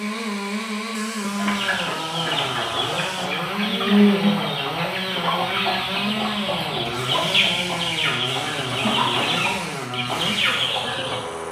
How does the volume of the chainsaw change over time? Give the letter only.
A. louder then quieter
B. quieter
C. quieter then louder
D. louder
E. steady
E.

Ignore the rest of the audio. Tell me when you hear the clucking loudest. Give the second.
4 s.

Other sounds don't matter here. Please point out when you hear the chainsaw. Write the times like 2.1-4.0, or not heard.
0.0-11.4.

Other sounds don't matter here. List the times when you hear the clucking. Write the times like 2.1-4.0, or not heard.
1.4-11.2.